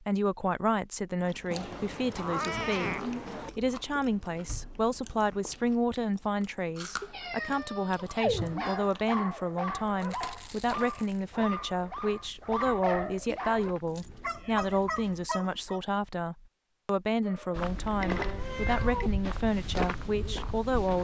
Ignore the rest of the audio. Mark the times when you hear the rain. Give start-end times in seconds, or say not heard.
not heard.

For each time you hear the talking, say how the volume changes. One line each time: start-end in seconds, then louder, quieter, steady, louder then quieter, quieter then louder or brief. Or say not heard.
0.0-3.0 brief
3.5-20.9 steady.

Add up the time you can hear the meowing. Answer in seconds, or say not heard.
5 s.